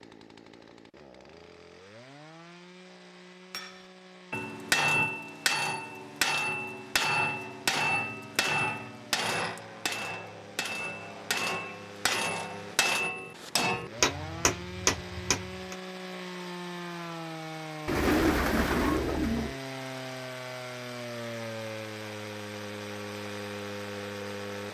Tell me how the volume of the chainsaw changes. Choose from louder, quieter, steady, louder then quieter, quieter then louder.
louder.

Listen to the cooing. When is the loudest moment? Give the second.
18 s.